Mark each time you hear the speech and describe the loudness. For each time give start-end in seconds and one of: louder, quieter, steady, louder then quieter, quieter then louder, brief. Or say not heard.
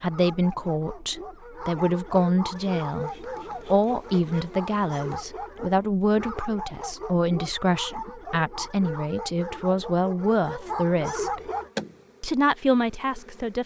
0.0-11.4 steady
12.2-13.6 brief.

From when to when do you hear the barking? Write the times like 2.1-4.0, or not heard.
0.1-11.7.